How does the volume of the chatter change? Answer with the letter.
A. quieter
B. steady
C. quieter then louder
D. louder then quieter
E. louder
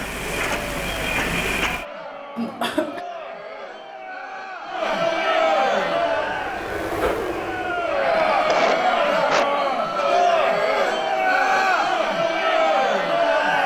E.